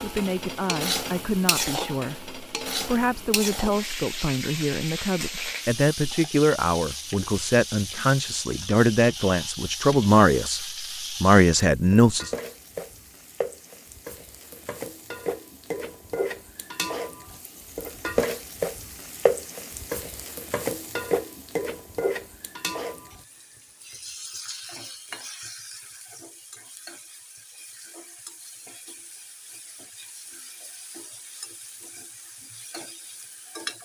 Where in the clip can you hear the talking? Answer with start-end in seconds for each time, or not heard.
0.0-12.3.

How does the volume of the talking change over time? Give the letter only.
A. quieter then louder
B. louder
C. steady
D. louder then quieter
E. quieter
B.